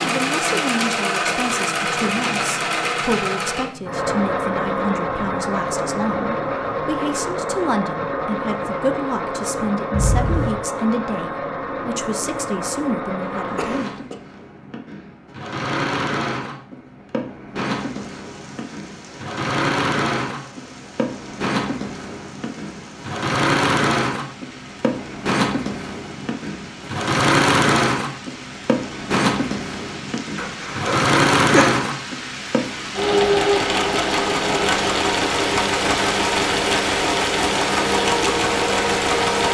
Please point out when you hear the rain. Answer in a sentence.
You can hear the rain from 17.6 to 39.4 s.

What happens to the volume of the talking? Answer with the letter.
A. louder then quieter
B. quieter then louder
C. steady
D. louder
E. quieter
C.